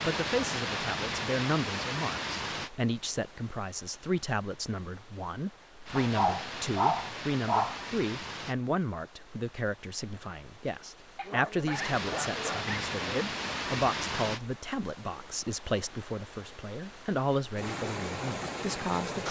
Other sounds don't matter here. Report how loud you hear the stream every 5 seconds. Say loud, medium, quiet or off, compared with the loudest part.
loud, medium, loud, loud.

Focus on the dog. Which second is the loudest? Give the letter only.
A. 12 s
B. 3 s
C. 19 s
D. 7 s
D.